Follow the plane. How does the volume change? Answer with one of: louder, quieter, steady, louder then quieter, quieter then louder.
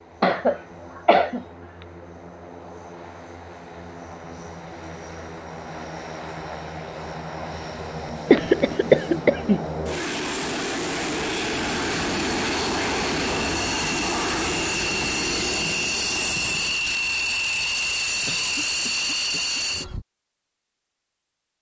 louder.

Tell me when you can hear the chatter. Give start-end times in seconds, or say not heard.
not heard.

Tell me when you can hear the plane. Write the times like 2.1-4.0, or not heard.
0.0-20.1.